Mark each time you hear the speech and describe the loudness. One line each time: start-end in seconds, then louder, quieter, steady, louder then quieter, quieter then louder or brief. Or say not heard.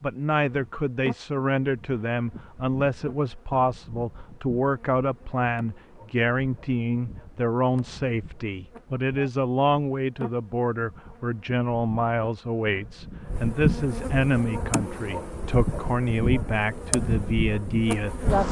0.0-18.4 steady.